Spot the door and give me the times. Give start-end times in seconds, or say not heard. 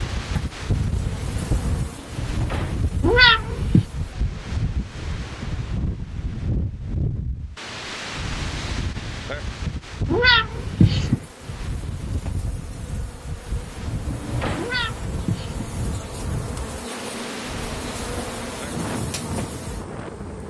1.9-2.9, 13.8-14.8.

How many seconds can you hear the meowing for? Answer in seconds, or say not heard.
3 s.